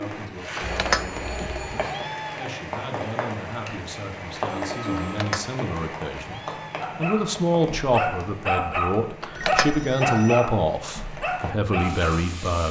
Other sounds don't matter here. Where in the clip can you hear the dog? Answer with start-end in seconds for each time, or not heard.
6.8-12.3.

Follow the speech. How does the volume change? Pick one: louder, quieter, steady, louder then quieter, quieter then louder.
louder.